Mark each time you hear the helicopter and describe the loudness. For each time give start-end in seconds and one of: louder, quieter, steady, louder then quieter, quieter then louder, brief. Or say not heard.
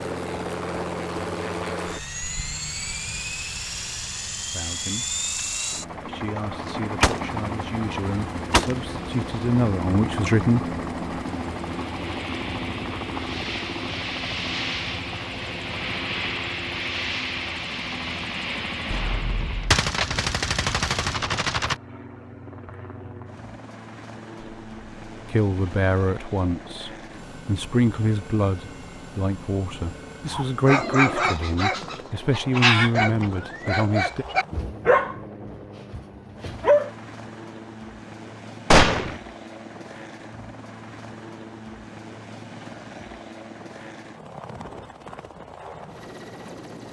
0.0-46.8 quieter.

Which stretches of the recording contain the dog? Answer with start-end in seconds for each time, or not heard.
30.2-36.9.